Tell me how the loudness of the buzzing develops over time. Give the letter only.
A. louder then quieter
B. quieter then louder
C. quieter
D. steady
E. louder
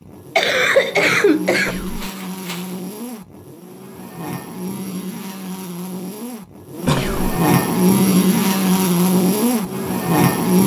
E.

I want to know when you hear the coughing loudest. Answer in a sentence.
The volume of the coughing peaks at 1 second.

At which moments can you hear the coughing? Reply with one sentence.
The coughing can be heard from 0.3 to 2.6 s and from 6.8 to 7.3 s.